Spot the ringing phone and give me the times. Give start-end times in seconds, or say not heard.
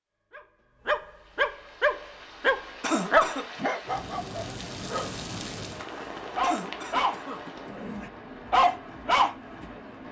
not heard.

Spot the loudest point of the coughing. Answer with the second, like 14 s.
3 s.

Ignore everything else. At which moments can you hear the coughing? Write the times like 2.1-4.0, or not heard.
2.8-3.5, 6.4-7.7.